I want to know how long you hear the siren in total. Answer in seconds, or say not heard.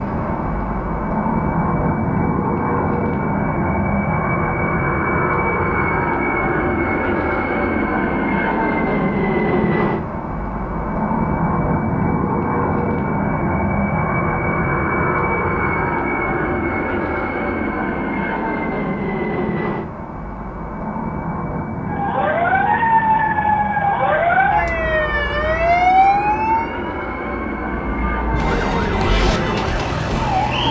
9 s.